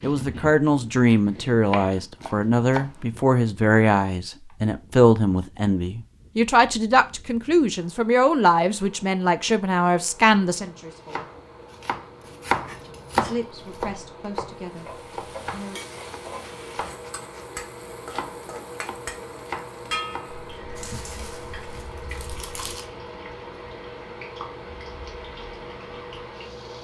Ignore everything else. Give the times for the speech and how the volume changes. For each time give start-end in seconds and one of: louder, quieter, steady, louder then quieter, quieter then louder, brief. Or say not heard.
0.0-11.2 steady
13.2-15.8 brief.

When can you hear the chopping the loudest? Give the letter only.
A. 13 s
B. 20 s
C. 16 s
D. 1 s
A.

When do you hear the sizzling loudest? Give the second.
20 s.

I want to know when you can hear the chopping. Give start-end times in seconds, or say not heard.
0.0-3.0, 10.3-20.4.